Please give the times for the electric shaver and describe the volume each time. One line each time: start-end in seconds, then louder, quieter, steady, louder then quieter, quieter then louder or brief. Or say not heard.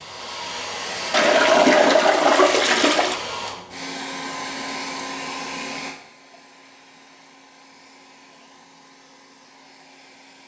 not heard.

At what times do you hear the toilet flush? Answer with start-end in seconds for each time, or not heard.
1.1-3.2.